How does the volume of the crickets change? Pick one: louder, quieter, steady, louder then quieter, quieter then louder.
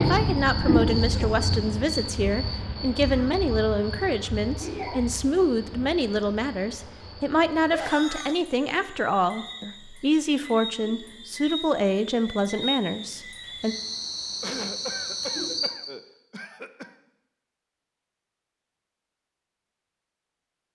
quieter then louder.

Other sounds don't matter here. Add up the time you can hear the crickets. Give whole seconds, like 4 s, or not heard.
16 s.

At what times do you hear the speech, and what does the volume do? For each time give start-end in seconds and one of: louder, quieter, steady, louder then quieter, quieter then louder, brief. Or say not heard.
0.0-13.8 steady.